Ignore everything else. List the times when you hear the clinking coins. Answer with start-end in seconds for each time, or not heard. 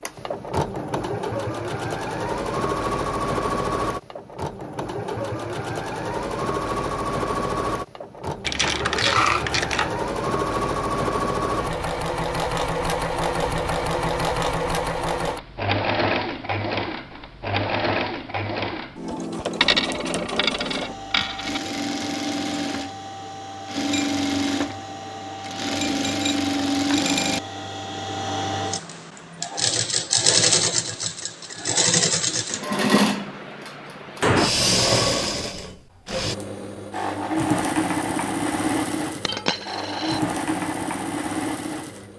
8.4-9.9, 19.6-21.6, 39.2-40.2.